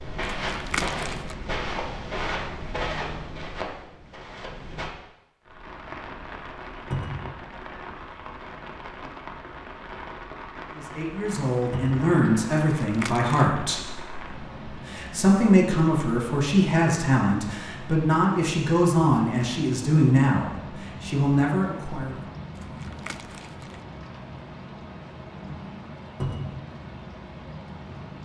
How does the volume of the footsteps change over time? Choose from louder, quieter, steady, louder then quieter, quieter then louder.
quieter.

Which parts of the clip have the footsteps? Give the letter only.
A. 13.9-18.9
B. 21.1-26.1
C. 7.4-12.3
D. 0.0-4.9
D.